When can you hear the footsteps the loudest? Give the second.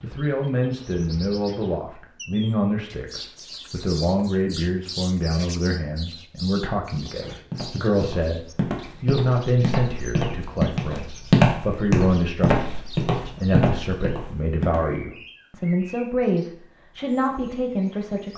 11 s.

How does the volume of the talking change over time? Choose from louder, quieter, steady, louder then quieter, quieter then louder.
steady.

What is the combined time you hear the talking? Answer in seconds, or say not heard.
18 s.